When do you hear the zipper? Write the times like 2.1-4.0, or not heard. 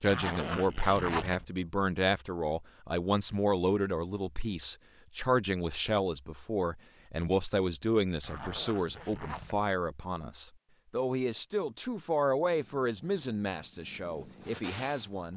0.1-1.4, 8.2-9.7.